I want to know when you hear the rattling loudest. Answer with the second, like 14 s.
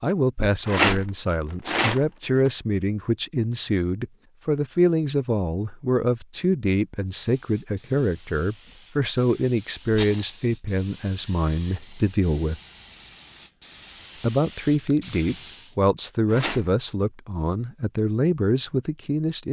1 s.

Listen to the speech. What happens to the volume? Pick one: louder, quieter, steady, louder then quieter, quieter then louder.
steady.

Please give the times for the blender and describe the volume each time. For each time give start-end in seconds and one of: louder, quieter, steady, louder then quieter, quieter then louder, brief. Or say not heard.
not heard.